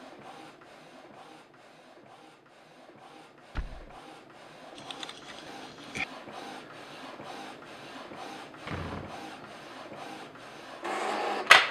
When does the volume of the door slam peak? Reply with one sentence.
The loudest moment of the door slam is at 9 seconds.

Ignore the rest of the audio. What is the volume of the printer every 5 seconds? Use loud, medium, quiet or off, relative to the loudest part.
quiet, quiet, loud.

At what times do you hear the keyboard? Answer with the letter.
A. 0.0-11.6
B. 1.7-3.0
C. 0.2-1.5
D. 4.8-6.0
D.